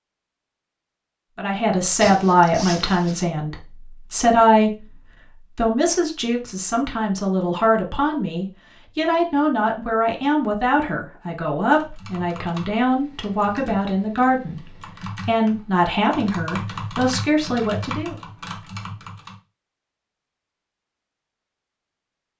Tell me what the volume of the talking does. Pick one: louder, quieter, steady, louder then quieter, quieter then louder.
steady.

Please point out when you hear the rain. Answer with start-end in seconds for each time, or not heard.
not heard.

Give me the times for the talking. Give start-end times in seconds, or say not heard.
1.4-5.0, 5.5-18.1.